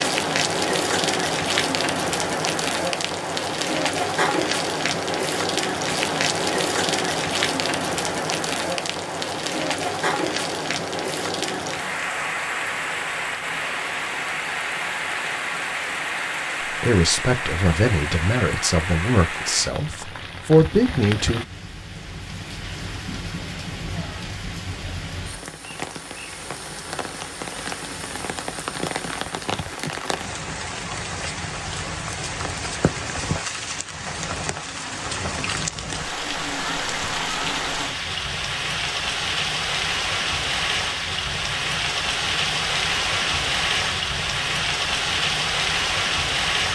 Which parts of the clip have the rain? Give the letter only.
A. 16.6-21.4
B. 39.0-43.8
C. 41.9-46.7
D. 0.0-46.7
D.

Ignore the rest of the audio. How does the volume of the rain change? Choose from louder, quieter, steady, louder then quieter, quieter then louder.
quieter then louder.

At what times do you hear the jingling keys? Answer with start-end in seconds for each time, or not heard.
not heard.